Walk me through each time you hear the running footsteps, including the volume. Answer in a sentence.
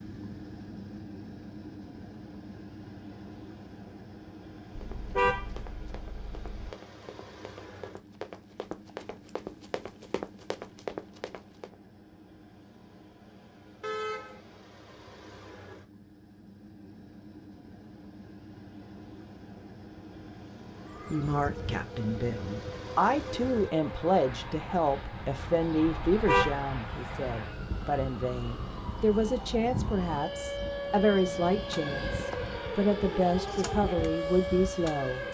You can hear the running footsteps from 4.8 to 11.8 s, getting louder.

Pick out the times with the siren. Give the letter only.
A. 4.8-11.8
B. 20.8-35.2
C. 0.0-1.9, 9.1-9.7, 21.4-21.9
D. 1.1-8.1
B.